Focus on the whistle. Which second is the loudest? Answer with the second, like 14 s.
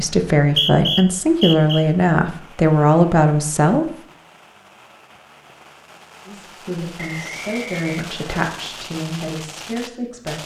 1 s.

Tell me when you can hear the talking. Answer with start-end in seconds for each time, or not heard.
0.0-3.9, 6.2-10.4.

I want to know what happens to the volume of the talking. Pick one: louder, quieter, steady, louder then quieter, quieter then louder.
quieter.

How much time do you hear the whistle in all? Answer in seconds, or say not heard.
3 s.